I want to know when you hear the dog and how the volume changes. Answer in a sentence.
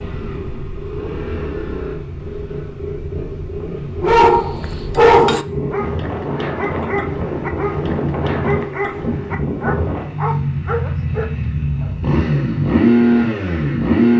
You can hear the dog from 4.0 to 11.9 s, getting quieter.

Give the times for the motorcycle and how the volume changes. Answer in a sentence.
The motorcycle can be heard from 0.0 to 14.1 s, getting louder.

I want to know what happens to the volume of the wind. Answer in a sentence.
The volume of the wind goes up.